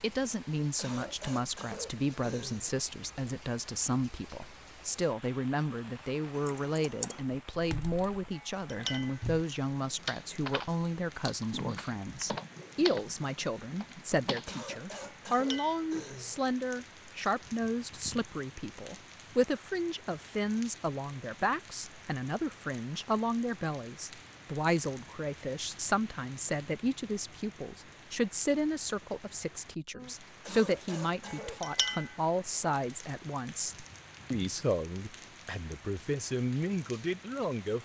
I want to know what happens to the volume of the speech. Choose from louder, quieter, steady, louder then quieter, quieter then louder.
steady.